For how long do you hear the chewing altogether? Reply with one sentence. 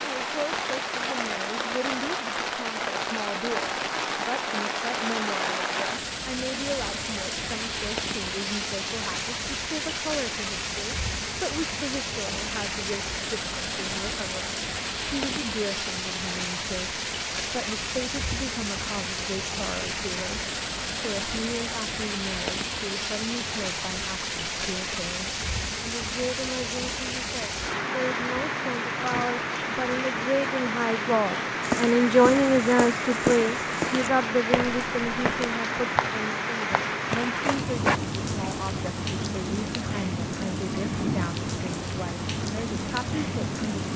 The chewing can't be heard in this clip.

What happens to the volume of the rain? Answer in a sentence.
The loudness of the rain stays about the same.